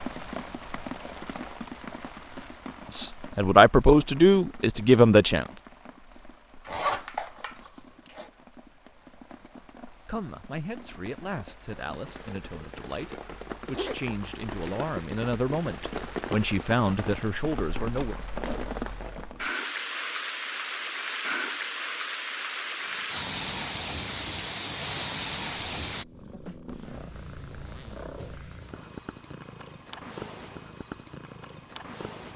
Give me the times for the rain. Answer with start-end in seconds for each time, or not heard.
0.0-26.1.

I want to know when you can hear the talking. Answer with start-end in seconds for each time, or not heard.
2.9-5.5, 10.1-18.1.